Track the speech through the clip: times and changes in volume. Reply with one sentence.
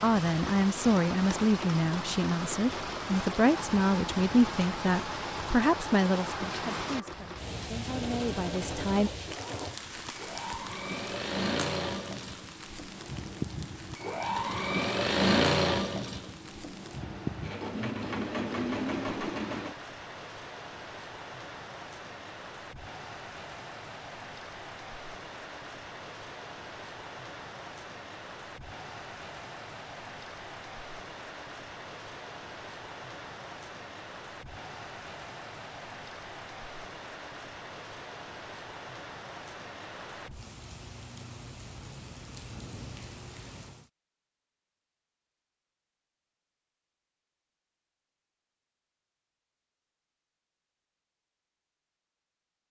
You can hear the speech from 0.0 to 9.1 s, getting quieter.